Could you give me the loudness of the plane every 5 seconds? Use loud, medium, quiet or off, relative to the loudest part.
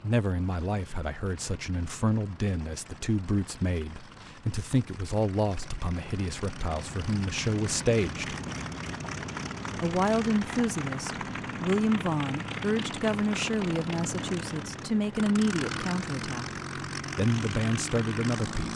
quiet, loud, loud, loud.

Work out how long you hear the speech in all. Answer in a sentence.
You can hear the speech for 17 seconds altogether.